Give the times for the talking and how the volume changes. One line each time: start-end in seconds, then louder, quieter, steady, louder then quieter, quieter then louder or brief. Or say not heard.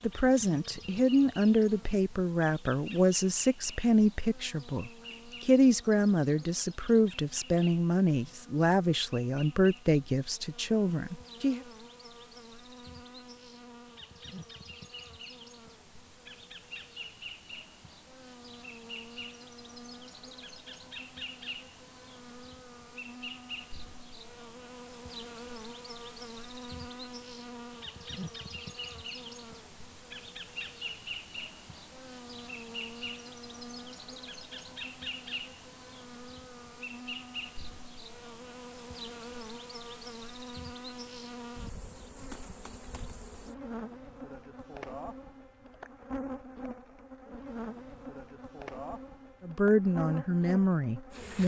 0.0-11.7 steady
49.4-51.4 brief.